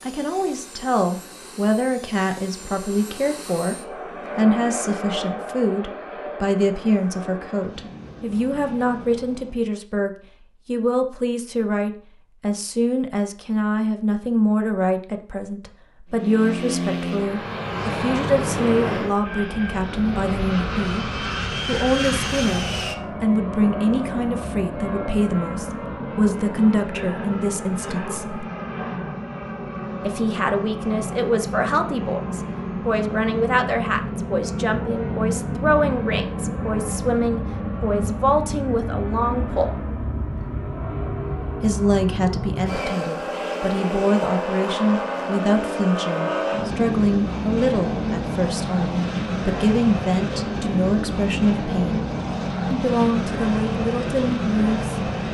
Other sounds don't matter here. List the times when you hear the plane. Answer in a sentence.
The plane can be heard from 0.0 to 9.7 s and from 16.1 to 55.2 s.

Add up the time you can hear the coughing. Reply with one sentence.
The coughing can be heard for 2 seconds in total.